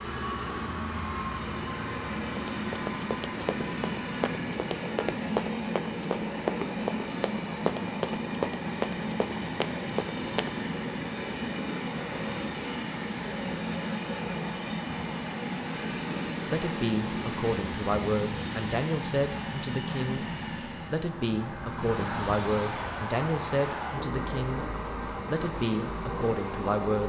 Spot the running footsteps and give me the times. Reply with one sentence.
The running footsteps can be heard from 2.4 to 10.6 s.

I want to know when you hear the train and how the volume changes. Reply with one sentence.
You can hear the train from 0.0 to 27.0 s, at a steady volume.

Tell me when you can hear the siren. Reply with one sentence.
The siren can't be heard in this clip.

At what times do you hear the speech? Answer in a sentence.
You can hear the speech from 16.4 to 20.2 s, from 20.9 to 24.6 s and from 25.2 to 27.0 s.